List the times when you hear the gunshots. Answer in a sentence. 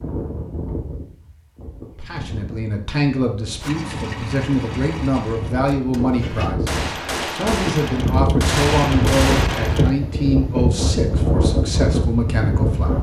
You can hear the gunshots from 6.7 to 9.9 s.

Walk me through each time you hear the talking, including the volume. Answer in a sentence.
The talking can be heard from 1.9 to 12.9 s, at a steady volume.